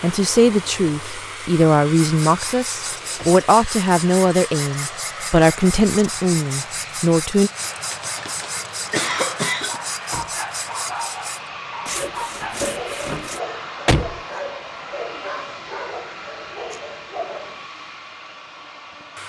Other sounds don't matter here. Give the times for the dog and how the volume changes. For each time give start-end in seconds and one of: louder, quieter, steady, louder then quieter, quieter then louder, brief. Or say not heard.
9.7-17.6 steady.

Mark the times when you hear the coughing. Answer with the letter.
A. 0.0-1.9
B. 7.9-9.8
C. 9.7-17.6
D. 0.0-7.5
B.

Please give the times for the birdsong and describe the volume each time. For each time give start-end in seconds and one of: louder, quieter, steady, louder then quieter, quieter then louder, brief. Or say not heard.
not heard.